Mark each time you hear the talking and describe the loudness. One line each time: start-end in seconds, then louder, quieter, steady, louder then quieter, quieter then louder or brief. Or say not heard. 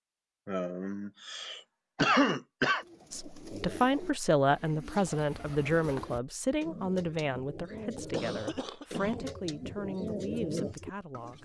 3.1-11.4 quieter.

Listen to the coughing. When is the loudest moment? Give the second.
2 s.